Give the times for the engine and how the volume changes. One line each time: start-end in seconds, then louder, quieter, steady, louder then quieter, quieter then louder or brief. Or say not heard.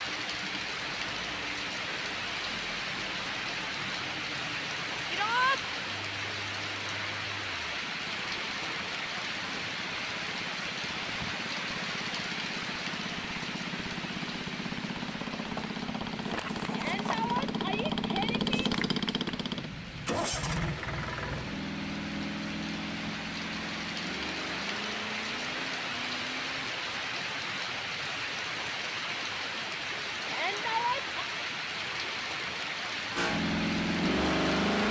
0.0-26.7 louder then quieter
33.1-34.8 brief.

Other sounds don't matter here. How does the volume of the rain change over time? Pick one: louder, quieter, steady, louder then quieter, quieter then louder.
quieter then louder.